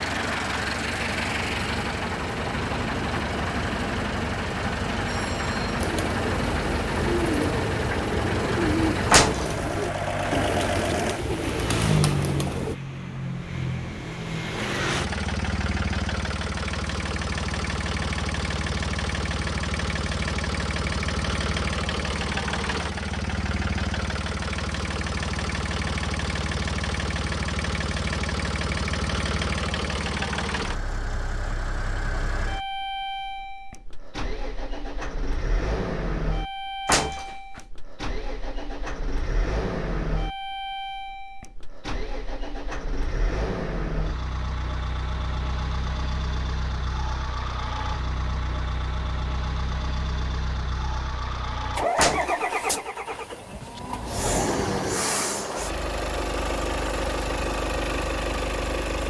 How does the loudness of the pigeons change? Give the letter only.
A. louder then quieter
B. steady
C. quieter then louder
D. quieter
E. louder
B.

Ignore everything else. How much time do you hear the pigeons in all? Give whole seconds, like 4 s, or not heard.
7 s.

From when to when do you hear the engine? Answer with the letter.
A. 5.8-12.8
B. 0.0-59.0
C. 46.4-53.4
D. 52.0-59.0
B.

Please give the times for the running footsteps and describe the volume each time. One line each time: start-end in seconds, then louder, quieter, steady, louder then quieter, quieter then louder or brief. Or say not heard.
not heard.